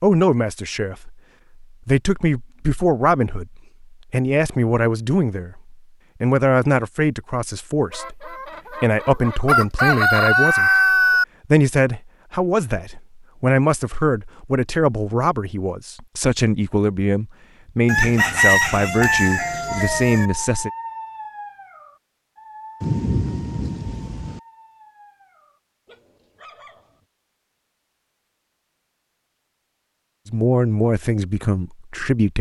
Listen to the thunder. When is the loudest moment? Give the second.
23 s.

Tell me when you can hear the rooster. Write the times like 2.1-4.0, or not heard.
7.9-11.2, 17.9-20.3.